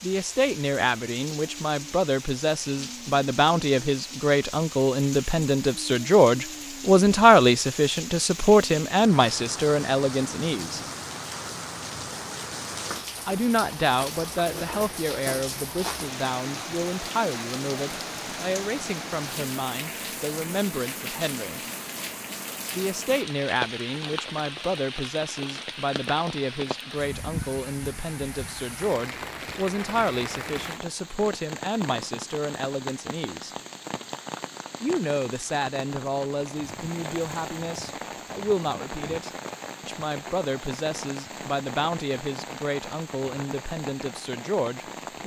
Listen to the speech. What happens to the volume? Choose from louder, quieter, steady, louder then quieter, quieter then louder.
quieter.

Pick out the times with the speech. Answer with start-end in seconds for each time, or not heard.
0.0-10.8, 13.2-21.6, 22.7-33.5, 34.8-45.2.